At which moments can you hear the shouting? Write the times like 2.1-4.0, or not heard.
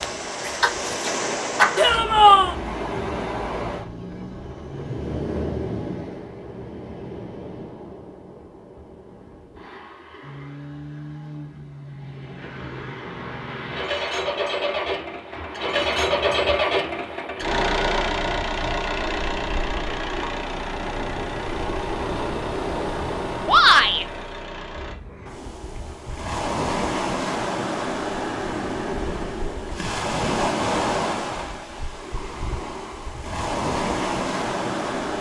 1.8-2.5, 23.4-24.1.